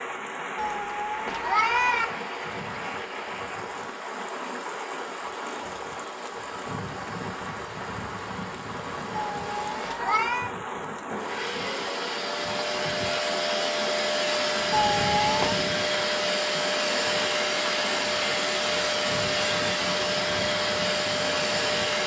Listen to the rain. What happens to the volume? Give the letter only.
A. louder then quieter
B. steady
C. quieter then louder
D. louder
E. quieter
B.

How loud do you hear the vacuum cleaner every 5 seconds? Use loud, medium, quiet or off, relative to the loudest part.
quiet, quiet, loud, loud, loud.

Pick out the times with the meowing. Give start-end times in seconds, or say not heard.
0.6-2.0, 9.3-10.6, 14.7-15.6.